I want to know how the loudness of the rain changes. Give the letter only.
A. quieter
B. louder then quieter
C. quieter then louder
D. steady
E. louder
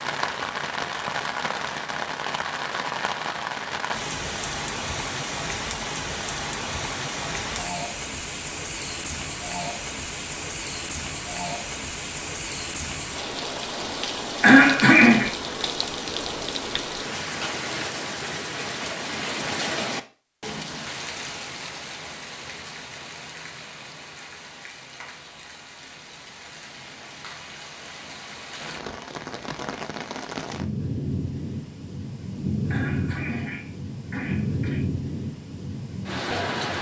C.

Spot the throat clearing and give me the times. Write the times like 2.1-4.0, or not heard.
14.4-15.3, 32.7-34.9.